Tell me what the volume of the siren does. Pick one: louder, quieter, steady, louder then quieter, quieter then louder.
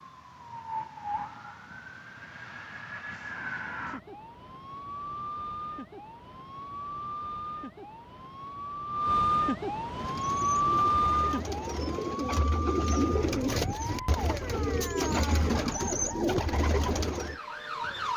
louder then quieter.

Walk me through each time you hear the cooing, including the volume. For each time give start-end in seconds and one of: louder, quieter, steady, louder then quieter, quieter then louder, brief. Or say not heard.
9.9-17.4 louder.